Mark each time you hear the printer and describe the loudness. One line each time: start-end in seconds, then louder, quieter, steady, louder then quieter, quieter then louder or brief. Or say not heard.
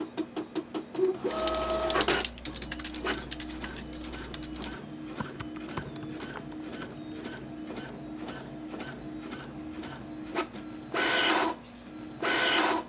0.0-12.8 quieter then louder.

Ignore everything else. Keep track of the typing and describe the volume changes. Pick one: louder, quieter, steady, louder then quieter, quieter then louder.
quieter then louder.